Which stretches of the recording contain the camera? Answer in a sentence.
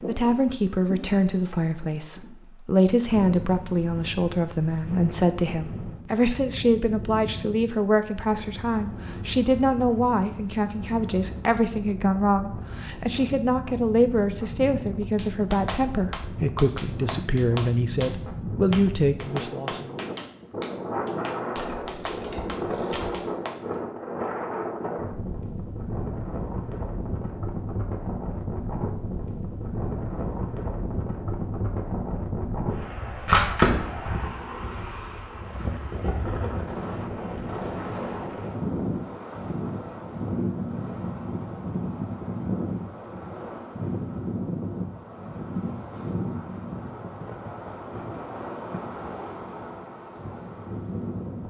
The camera can be heard from 21.6 to 23.1 s and from 33.1 to 34.0 s.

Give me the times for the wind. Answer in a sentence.
The wind can be heard from 0.0 to 51.4 s.